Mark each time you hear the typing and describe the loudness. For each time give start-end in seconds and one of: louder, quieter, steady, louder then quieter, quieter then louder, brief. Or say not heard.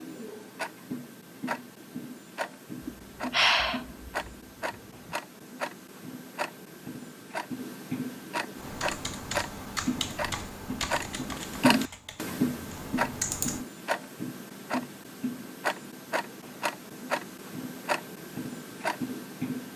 8.6-13.7 quieter then louder.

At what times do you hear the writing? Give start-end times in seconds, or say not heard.
not heard.